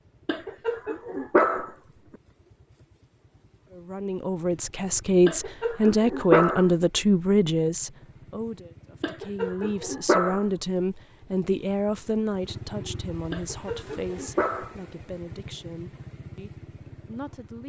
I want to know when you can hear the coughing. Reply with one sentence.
You can't hear the coughing here.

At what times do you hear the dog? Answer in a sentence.
You can hear the dog from 0.2 to 1.7 s, from 5.2 to 6.7 s, from 9.0 to 10.4 s and from 13.3 to 14.8 s.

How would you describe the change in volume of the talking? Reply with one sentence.
The loudness of the talking goes down.